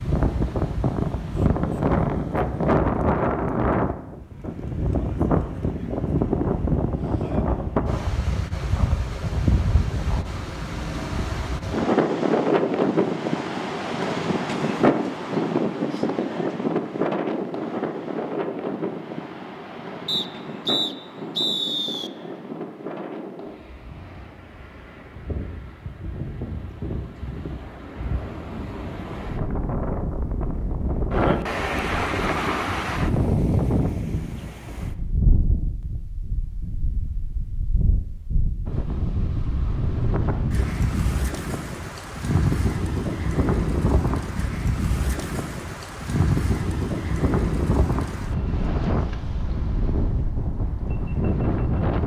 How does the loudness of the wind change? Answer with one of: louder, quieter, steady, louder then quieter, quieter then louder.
quieter then louder.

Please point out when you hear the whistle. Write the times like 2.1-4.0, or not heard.
20.1-22.1.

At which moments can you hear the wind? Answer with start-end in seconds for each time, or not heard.
0.0-52.0.